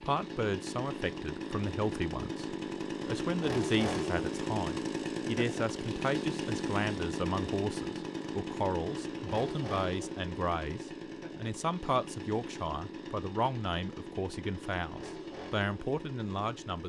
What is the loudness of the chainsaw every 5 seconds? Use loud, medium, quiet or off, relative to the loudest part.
loud, loud, medium, medium.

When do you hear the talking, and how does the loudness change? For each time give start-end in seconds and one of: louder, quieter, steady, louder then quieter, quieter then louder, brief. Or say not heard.
0.0-16.8 steady.